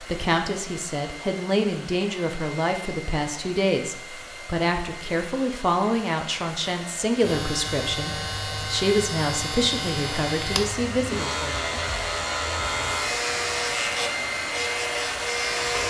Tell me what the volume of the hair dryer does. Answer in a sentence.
The volume of the hair dryer goes up.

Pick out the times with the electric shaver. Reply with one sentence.
The electric shaver can be heard from 7.2 to 15.8 s.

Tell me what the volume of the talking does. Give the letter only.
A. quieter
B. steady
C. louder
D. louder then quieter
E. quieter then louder
B.